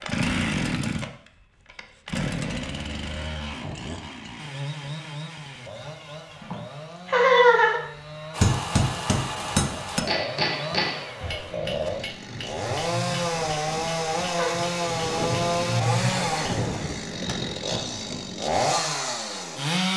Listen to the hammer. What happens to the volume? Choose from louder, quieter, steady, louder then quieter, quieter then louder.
quieter then louder.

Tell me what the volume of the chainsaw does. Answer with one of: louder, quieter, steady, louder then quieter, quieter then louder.
quieter then louder.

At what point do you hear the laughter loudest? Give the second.
7 s.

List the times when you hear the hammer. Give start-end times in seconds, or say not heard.
8.3-16.4.